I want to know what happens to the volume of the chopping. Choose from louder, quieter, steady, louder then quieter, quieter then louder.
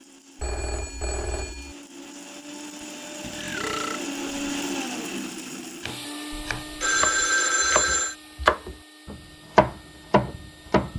louder then quieter.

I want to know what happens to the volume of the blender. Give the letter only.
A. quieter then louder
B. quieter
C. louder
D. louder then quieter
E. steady
D.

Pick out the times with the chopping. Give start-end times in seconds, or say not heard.
5.8-10.9.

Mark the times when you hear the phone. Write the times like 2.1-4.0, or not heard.
0.3-1.8, 6.3-8.2.